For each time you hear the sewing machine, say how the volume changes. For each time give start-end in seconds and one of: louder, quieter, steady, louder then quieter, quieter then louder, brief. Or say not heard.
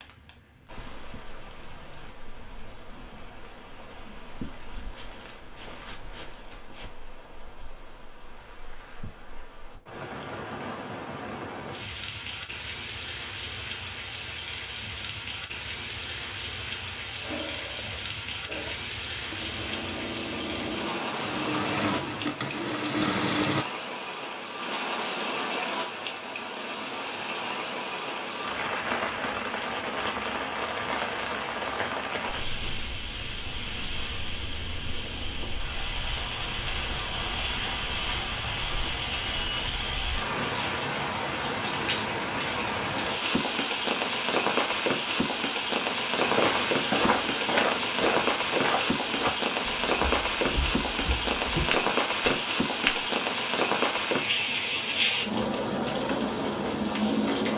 17.2-23.6 louder.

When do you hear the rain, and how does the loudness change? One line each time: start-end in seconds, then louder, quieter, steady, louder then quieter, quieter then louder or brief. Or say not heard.
0.0-57.5 louder.